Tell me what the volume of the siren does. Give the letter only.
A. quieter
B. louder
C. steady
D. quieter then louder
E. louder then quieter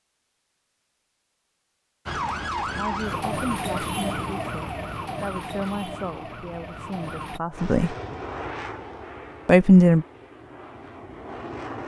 A.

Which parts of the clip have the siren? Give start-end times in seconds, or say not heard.
2.0-7.4.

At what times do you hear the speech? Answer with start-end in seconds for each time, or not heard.
2.8-8.0, 9.4-10.1.